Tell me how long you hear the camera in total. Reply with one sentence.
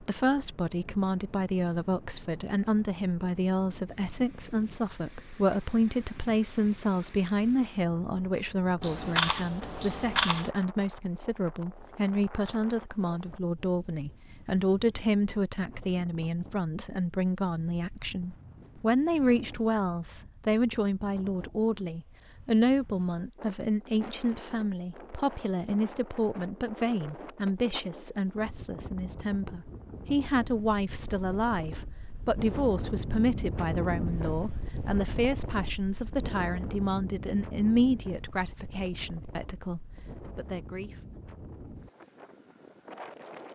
The camera can be heard for 2 seconds in total.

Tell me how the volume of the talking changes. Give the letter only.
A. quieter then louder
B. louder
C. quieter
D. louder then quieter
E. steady
E.